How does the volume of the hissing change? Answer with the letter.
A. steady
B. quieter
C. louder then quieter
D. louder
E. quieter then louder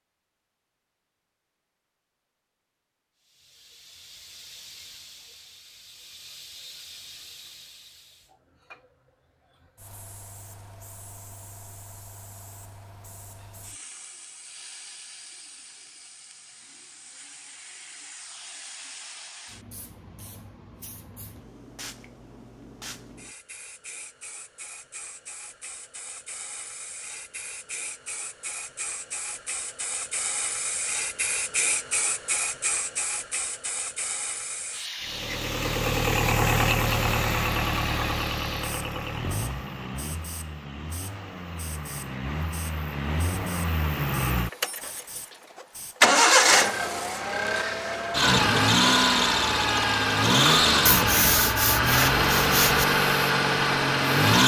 C.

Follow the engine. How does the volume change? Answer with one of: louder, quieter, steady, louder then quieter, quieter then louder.
quieter then louder.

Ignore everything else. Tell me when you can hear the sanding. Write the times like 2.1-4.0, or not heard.
50.9-52.9.